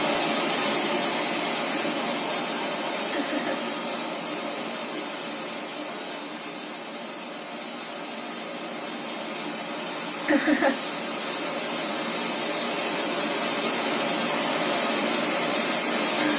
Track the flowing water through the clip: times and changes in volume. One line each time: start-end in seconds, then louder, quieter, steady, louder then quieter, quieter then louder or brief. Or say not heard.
0.0-16.3 quieter then louder.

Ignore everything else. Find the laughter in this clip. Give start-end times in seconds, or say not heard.
3.1-3.6, 10.2-10.8.